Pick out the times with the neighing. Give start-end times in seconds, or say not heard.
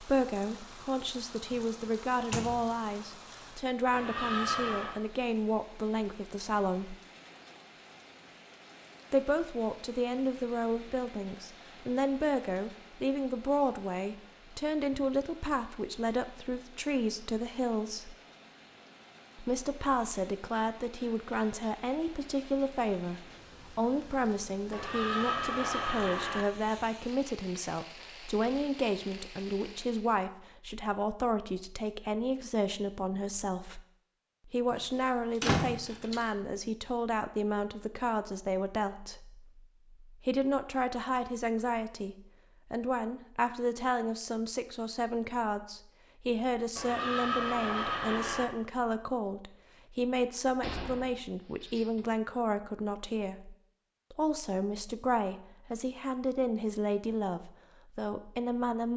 3.9-5.0, 24.7-26.4, 46.8-48.5.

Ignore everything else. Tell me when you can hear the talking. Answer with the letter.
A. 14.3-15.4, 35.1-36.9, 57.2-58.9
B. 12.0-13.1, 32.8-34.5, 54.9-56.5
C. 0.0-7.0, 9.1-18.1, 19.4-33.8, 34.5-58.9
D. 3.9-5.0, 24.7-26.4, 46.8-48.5
C.